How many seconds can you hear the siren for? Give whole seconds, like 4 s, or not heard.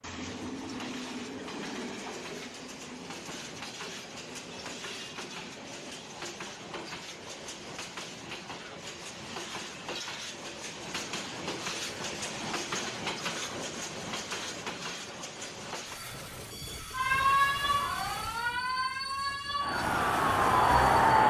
4 s.